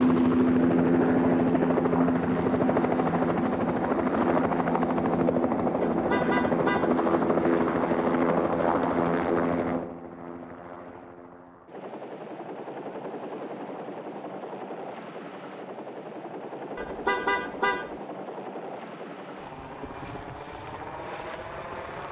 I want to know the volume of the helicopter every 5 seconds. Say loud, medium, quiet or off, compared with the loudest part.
loud, loud, quiet, quiet, quiet.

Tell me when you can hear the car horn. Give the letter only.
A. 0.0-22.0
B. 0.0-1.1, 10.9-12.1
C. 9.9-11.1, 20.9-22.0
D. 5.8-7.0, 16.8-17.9
D.